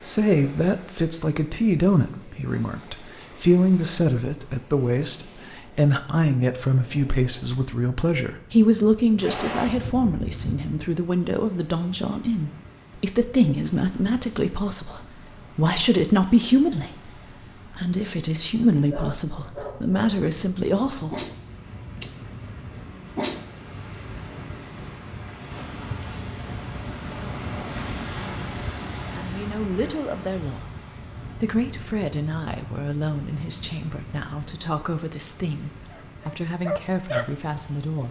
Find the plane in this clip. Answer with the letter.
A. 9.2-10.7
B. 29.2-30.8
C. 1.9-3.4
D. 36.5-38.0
A.